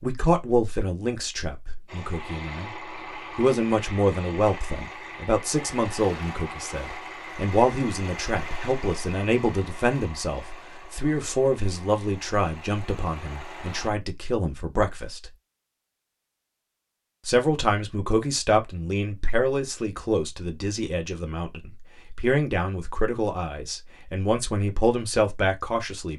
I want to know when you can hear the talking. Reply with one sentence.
The talking can be heard from 0.0 to 2.7 s, from 3.4 to 15.3 s and from 17.2 to 26.1 s.